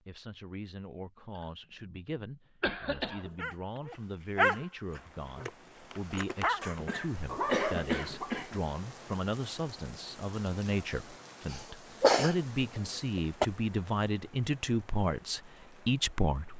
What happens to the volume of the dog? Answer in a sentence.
The volume of the dog goes down, then up.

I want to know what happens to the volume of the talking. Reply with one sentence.
The loudness of the talking goes up.